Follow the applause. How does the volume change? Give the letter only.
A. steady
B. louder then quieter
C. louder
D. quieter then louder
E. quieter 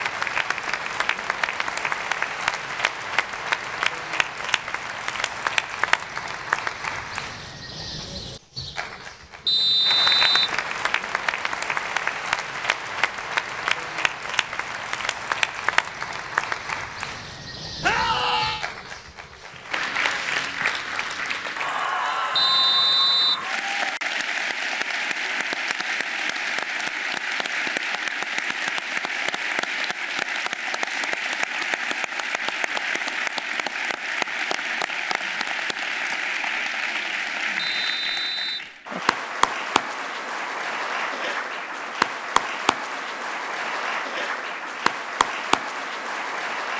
A.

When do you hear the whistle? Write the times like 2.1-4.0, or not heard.
9.4-10.6, 22.4-23.4, 37.5-38.7.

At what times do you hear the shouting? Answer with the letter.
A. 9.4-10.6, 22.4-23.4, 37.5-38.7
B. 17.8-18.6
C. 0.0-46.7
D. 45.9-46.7
B.